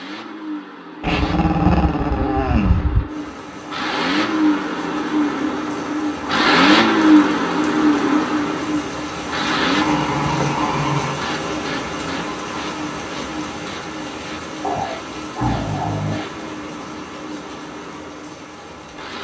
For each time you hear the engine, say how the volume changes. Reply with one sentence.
You can hear the engine from 0.0 to 19.1 s, getting louder then quieter.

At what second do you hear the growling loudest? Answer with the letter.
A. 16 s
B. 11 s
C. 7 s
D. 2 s
D.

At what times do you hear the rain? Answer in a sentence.
You can hear the rain from 3.0 to 19.1 s.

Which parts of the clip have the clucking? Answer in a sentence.
The clucking can't be heard in this clip.